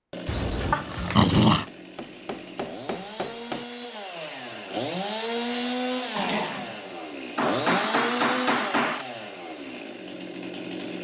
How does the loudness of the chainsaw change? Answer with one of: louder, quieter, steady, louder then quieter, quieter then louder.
louder then quieter.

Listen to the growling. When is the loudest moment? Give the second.
1 s.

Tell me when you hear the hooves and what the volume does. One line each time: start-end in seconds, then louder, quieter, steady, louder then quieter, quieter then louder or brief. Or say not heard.
not heard.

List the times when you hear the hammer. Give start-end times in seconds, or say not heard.
1.6-3.6, 7.3-9.1.